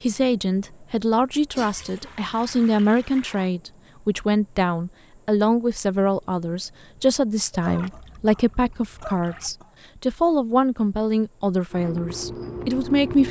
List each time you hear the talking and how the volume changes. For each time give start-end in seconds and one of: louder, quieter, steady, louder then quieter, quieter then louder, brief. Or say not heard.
0.0-13.2 steady.